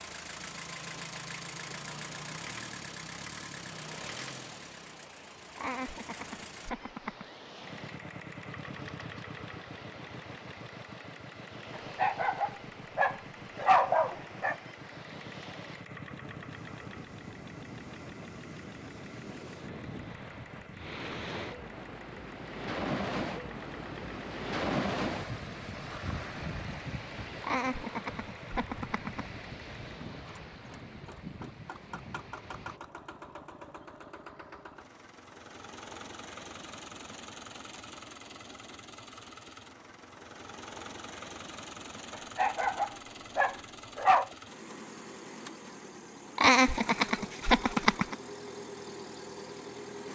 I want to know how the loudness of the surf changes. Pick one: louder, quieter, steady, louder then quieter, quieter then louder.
louder then quieter.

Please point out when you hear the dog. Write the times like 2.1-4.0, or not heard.
11.8-14.6, 42.1-44.3.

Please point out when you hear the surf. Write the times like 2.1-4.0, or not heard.
0.0-32.8.